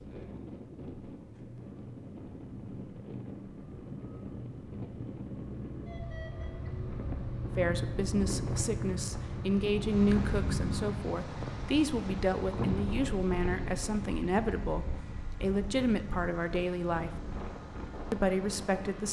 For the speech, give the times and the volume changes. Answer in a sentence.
The speech can be heard from 7.5 to 17.1 s, at a steady volume; and briefly from 18.1 to 19.0 s.